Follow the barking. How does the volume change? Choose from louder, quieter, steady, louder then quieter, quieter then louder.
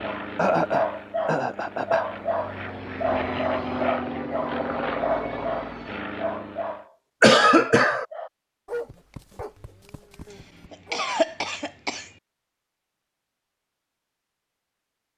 quieter.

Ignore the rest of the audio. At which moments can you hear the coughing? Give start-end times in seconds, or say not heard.
0.3-2.0, 7.2-8.1, 10.3-12.1.